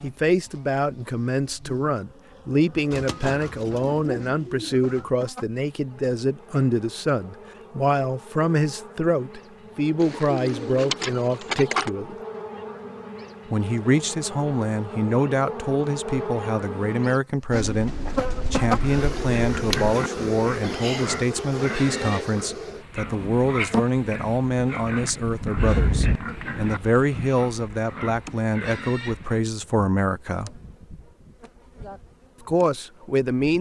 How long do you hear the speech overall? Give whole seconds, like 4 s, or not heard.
30 s.